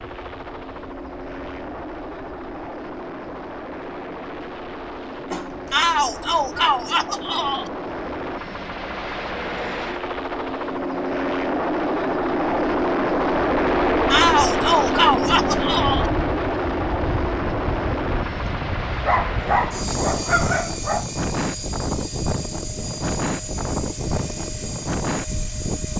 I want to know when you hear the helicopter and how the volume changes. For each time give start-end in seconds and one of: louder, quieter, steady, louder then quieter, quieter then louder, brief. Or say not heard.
0.0-25.9 louder then quieter.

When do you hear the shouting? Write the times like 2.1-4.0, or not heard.
5.7-7.7, 14.1-16.1.